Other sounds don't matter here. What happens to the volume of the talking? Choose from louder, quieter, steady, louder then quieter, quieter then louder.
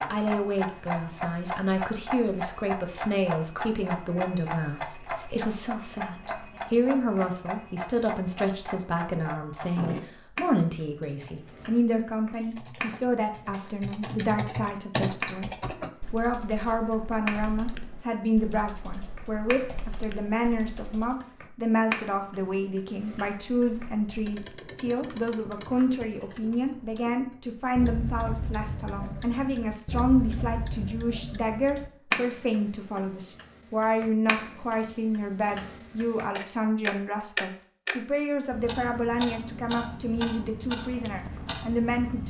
steady.